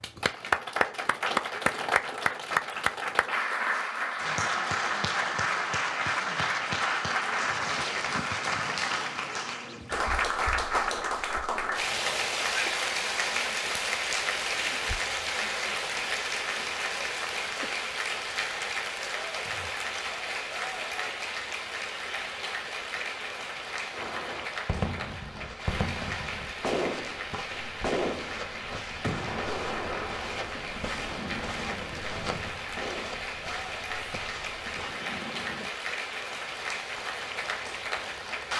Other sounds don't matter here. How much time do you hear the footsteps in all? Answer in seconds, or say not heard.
10 s.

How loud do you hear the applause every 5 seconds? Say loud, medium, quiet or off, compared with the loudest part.
loud, loud, loud, loud, medium, medium, medium, medium.